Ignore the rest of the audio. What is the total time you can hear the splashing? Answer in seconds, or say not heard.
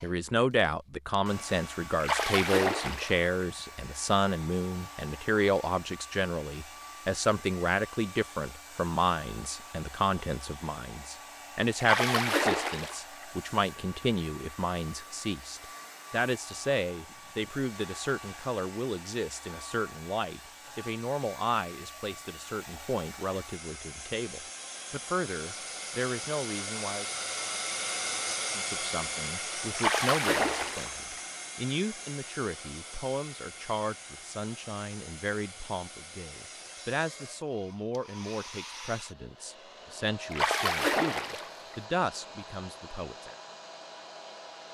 6 s.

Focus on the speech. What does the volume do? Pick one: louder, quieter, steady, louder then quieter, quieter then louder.
quieter.